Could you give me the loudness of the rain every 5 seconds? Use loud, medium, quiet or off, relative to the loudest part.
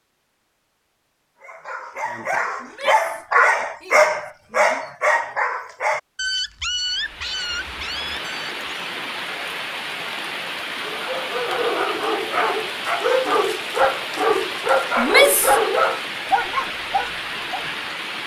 off, loud, loud, loud.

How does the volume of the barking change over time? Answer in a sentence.
The loudness of the barking goes down, then up.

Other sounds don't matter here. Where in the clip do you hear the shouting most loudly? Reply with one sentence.
The loudest moment of the shouting is at 15 seconds.